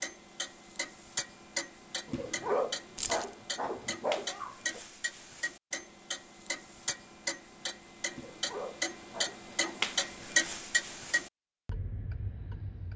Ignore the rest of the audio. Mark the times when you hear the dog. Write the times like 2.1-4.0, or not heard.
2.0-4.8, 8.1-9.8.